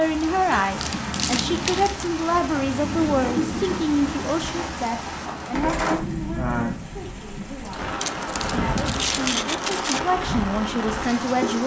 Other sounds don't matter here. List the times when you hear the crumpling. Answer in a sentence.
The crumpling can be heard from 0.8 to 2.1 s and from 8.0 to 10.0 s.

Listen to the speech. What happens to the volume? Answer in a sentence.
The loudness of the speech goes down, then up.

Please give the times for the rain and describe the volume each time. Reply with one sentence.
The rain can be heard from 0.0 to 11.6 s, at a steady volume.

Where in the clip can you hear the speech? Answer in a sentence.
You can hear the speech from 0.0 to 11.6 s.